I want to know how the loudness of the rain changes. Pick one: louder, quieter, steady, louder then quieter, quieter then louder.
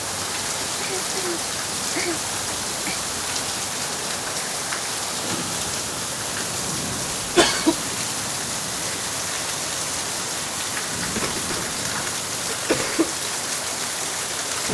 steady.